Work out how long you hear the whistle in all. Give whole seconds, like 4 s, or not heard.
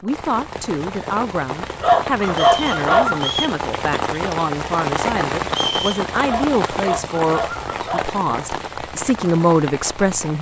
2 s.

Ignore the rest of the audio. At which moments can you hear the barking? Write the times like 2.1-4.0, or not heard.
1.8-3.3, 6.2-8.1.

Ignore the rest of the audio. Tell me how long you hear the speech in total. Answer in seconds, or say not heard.
10 s.